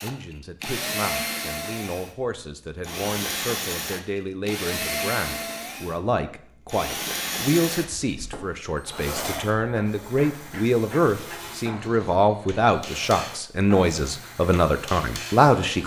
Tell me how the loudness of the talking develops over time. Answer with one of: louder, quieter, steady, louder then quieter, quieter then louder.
louder.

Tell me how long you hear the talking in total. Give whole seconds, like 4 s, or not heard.
16 s.